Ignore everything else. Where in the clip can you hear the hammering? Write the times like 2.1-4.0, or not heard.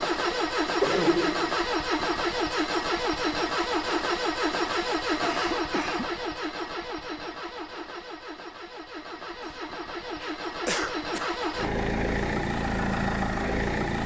not heard.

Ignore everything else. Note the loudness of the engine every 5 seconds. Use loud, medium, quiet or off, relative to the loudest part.
loud, medium, loud.